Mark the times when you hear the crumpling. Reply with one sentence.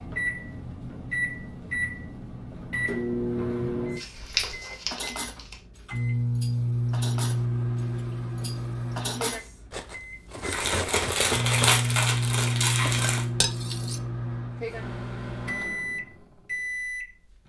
The crumpling can be heard from 4.0 to 5.5 s and from 10.5 to 13.2 s.